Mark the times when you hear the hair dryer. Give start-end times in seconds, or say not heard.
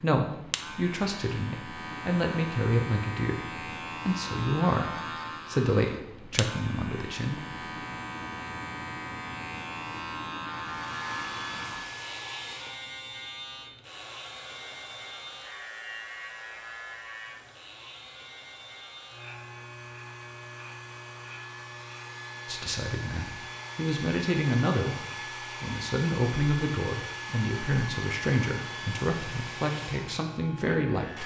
10.7-31.2.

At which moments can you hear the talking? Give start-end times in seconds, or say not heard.
0.0-7.5, 22.4-31.2.